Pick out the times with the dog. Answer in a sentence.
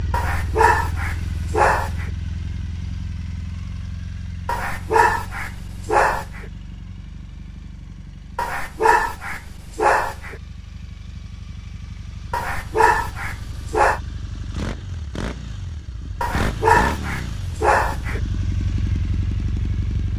You can hear the dog from 0.1 to 2.0 s, from 4.5 to 6.5 s, from 8.3 to 10.3 s, from 12.3 to 14.0 s and from 16.2 to 18.2 s.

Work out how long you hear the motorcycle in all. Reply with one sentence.
The motorcycle can be heard for 20 seconds in total.